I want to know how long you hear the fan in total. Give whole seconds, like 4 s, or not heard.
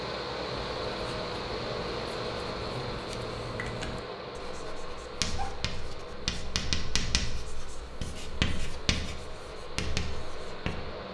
11 s.